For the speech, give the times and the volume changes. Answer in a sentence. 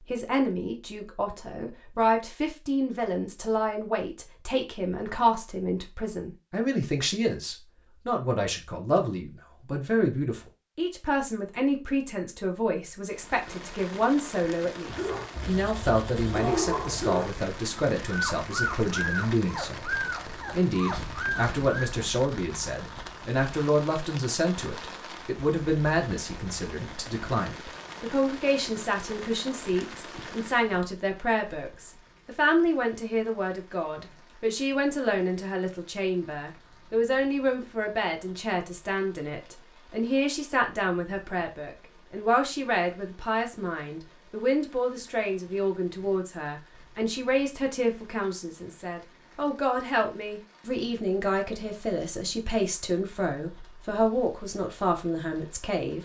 The speech can be heard from 0.1 to 56.0 s, at a steady volume.